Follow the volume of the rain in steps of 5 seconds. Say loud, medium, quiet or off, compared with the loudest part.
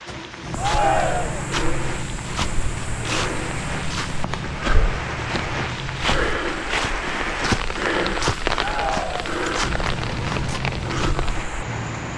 medium, loud, loud.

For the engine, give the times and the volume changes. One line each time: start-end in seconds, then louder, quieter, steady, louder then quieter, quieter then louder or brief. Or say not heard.
0.1-6.4 steady
9.6-12.1 brief.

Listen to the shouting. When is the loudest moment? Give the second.
1 s.